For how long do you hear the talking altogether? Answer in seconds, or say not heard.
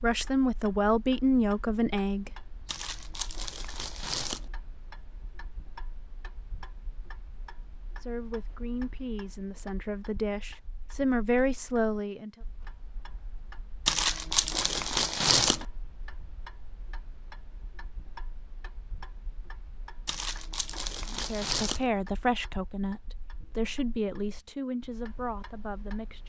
12 s.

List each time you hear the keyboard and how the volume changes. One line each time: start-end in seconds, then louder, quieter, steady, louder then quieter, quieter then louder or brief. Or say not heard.
not heard.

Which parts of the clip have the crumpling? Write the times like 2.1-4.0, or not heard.
2.6-4.5, 13.8-15.7, 20.1-21.9.